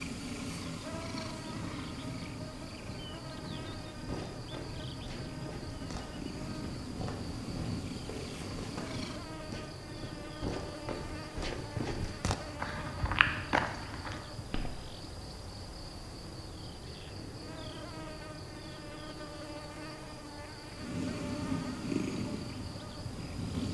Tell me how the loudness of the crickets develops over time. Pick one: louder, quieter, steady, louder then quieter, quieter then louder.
steady.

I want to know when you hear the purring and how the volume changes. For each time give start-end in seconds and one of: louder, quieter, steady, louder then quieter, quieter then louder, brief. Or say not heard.
0.0-9.3 quieter then louder
20.8-23.6 brief.